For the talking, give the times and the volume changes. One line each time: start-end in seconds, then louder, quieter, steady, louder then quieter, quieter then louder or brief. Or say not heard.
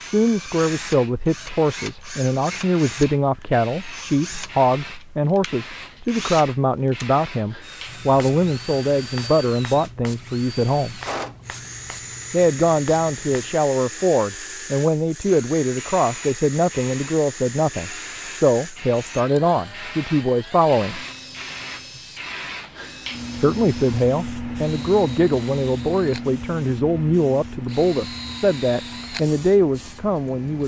0.0-11.0 steady
12.3-21.0 steady
23.4-30.6 steady.